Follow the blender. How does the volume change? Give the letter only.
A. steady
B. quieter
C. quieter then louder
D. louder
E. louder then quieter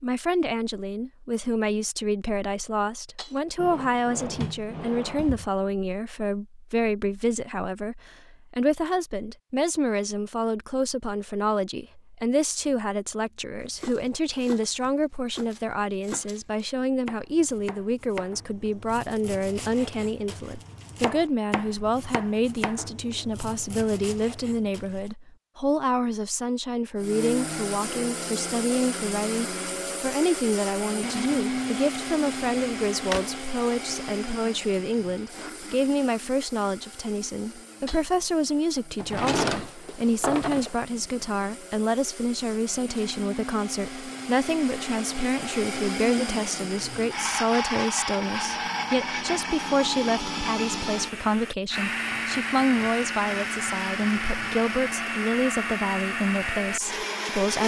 C.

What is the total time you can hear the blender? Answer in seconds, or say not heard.
31 s.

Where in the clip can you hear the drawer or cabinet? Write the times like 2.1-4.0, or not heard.
3.5-5.5, 32.4-33.3, 39.0-40.8.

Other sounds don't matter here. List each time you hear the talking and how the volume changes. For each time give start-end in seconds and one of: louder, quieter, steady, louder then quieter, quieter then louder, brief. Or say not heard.
0.0-57.6 steady.